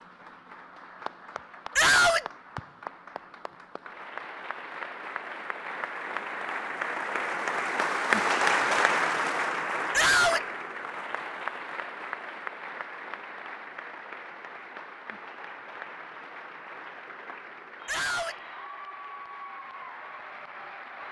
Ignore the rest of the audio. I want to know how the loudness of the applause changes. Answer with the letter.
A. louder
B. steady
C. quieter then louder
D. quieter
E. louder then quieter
E.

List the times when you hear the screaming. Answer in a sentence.
The screaming can be heard from 1.8 to 2.2 s, from 9.9 to 10.4 s and from 17.9 to 18.4 s.